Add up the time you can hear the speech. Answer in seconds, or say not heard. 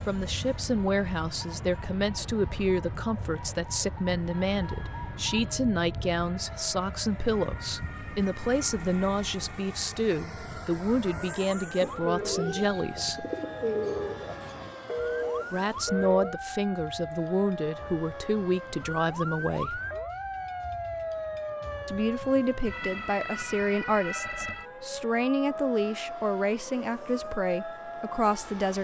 24 s.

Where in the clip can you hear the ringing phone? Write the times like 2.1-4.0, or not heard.
4.5-5.7, 14.8-16.4, 24.1-24.6.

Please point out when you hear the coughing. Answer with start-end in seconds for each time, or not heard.
not heard.